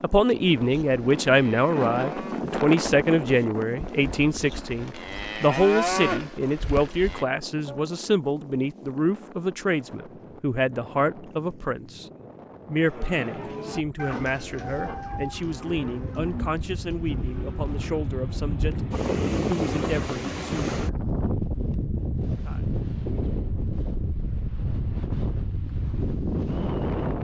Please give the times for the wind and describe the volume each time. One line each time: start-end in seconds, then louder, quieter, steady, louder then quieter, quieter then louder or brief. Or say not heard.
0.0-27.1 quieter then louder.